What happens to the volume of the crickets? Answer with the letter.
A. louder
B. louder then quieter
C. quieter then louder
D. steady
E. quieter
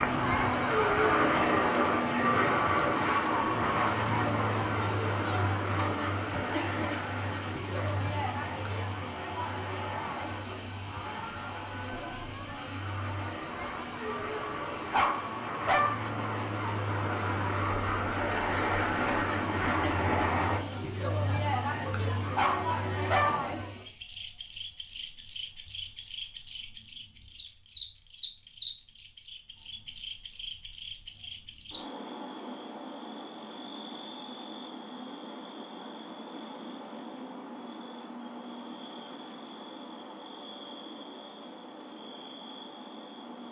E.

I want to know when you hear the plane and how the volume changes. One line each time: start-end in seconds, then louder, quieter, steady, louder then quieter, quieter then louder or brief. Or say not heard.
0.0-20.6 quieter then louder.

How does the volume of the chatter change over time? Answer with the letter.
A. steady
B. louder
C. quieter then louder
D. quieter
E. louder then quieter
C.